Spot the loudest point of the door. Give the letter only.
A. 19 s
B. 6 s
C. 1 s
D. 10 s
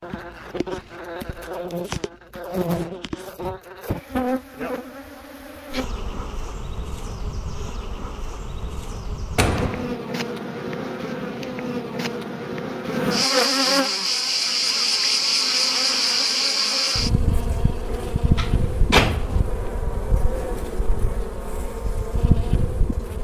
A.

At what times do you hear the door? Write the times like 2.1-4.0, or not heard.
9.3-9.9, 17.8-19.4.